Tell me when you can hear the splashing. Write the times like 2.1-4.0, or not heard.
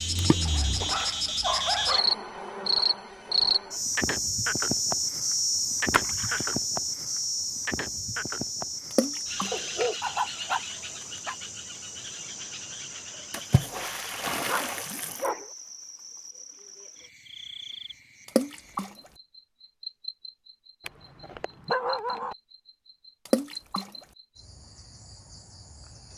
0.1-1.1, 5.9-6.5, 8.9-9.6, 13.3-15.3, 18.2-18.9, 23.2-23.9.